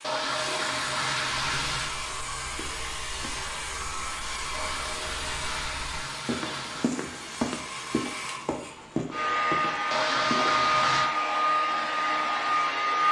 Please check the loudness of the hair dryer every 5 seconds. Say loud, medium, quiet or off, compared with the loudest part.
medium, medium, loud.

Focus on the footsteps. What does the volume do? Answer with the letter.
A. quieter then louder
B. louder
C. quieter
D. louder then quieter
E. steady
B.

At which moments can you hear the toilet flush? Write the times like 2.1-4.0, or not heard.
0.0-1.9, 4.5-6.9, 9.9-11.1.